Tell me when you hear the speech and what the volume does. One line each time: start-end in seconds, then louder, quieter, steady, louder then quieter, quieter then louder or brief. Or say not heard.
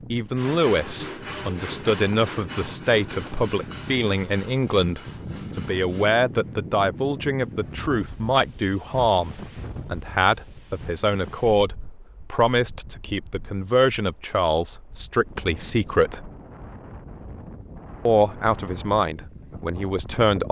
0.1-16.3 steady
18.1-20.4 brief.